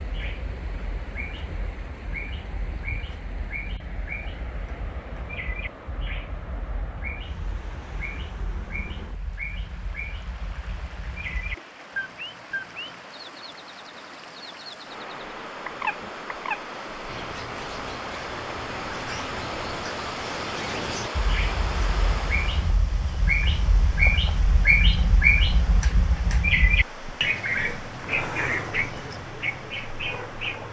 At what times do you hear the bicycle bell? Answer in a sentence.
You can't hear the bicycle bell here.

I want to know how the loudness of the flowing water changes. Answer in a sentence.
The volume of the flowing water goes up, then down.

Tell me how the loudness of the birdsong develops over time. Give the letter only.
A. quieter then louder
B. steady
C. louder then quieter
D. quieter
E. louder
E.